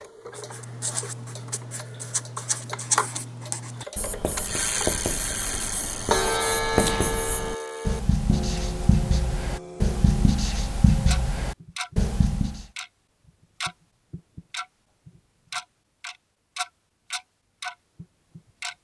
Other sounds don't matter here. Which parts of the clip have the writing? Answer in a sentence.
The writing can be heard from 0.3 to 12.7 s.